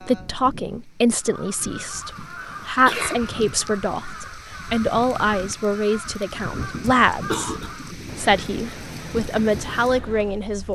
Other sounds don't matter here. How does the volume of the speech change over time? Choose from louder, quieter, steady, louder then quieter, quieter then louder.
steady.